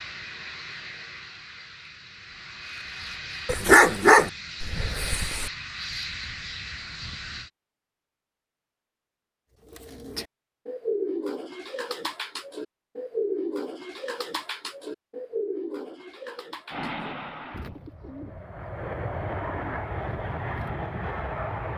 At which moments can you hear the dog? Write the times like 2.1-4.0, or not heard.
3.5-5.5.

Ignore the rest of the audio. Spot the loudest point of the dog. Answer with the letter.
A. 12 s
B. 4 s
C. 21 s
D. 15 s
B.